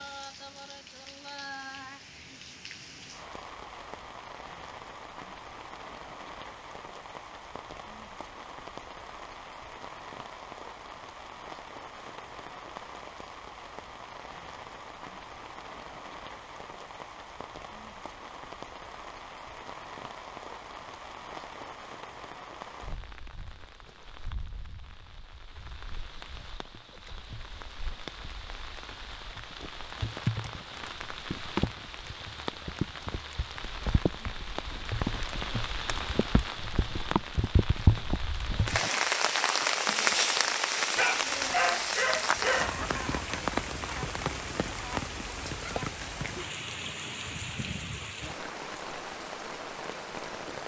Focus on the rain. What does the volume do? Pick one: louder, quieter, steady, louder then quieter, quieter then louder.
louder.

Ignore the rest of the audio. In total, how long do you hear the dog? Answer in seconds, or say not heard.
2 s.